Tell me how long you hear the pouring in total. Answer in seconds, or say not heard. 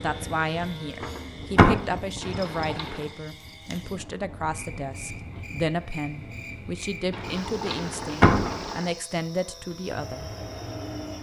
3 s.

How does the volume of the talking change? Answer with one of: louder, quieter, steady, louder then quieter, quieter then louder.
steady.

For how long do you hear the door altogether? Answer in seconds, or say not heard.
2 s.